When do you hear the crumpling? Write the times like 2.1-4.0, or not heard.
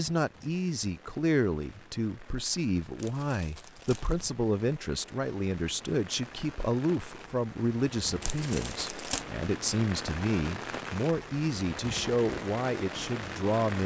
3.0-4.2, 8.2-9.2.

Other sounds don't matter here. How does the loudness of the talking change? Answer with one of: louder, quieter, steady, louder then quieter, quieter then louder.
steady.